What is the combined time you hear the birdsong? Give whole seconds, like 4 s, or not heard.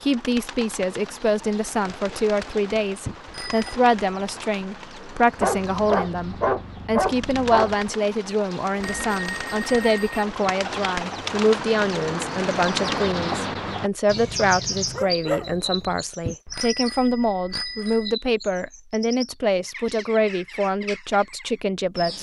22 s.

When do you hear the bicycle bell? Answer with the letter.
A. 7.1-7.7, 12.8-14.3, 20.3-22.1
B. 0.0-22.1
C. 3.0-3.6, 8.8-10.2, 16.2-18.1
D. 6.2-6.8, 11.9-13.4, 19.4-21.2
C.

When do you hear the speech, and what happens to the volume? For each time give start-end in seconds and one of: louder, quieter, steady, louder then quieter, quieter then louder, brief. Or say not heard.
0.0-22.1 steady.